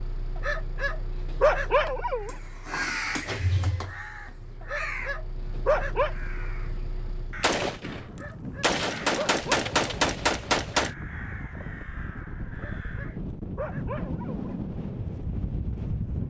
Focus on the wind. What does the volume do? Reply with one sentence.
The loudness of the wind goes up.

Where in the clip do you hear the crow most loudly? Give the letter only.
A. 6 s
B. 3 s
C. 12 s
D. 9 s
B.